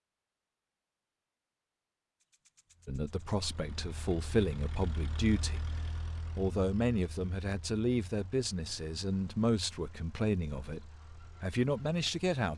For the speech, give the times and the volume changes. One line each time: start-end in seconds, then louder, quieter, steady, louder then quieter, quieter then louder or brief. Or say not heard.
2.9-12.5 steady.